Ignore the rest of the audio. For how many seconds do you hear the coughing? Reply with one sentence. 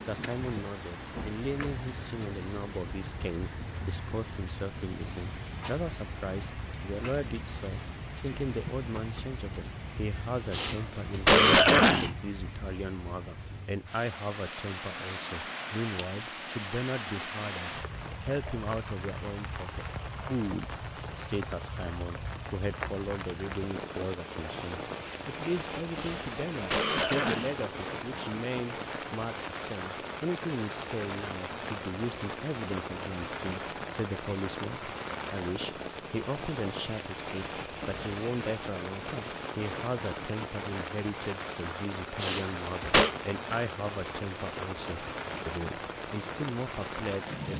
You can hear the coughing for 4 seconds altogether.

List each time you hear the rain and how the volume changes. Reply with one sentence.
You can hear the rain from 0.0 to 47.5 s, at a steady volume.